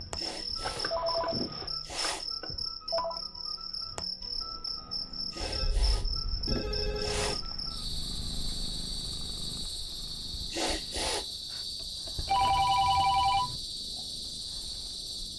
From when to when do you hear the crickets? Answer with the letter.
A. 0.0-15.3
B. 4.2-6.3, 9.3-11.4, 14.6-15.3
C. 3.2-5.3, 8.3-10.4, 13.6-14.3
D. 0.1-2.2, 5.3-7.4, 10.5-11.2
A.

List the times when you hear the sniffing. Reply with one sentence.
You can hear the sniffing from 0.1 to 2.2 s, from 5.3 to 7.4 s and from 10.5 to 11.2 s.